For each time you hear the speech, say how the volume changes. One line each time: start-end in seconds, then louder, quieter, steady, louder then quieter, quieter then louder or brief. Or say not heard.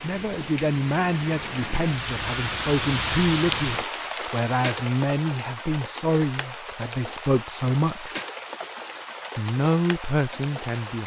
0.0-8.2 steady
9.3-11.0 brief.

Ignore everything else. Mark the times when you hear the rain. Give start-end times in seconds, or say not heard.
0.0-11.0.